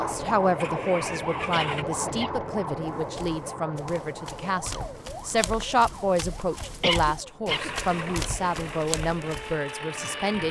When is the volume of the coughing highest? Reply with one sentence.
The loudest moment of the coughing is at 7 seconds.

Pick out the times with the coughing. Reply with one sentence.
The coughing can be heard from 1.5 to 2.4 s and from 6.8 to 7.7 s.